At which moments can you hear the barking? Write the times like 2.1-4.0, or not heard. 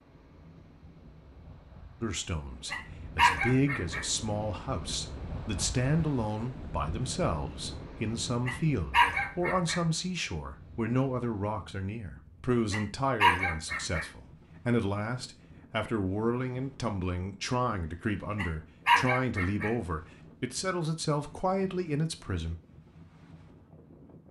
2.7-4.0, 8.4-9.8, 12.7-14.1, 18.4-19.7.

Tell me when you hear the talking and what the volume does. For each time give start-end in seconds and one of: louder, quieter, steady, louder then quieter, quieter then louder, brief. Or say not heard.
2.0-22.6 steady.